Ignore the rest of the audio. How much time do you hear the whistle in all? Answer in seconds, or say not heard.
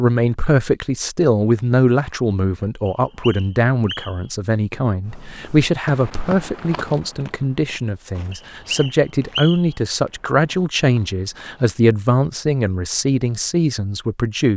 3 s.